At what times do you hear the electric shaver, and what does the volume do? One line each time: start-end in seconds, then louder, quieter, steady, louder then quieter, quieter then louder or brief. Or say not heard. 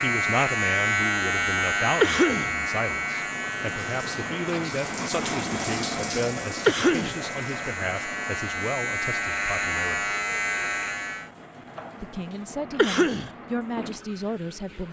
0.0-11.3 quieter then louder.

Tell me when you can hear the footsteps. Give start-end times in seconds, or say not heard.
not heard.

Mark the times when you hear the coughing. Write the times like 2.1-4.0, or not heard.
2.0-2.5, 6.7-7.2, 12.8-13.3.